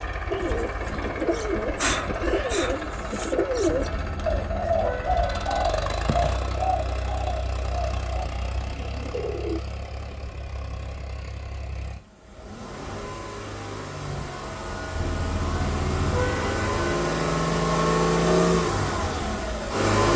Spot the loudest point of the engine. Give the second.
18 s.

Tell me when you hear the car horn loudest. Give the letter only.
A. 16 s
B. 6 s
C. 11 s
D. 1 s
A.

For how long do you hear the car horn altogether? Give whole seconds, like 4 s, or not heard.
4 s.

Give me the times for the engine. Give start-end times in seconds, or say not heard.
0.0-20.1.